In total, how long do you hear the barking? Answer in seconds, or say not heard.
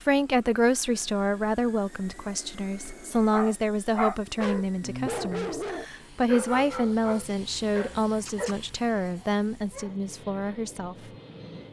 7 s.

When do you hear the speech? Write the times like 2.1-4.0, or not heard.
0.1-10.9.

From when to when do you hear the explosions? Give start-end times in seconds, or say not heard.
not heard.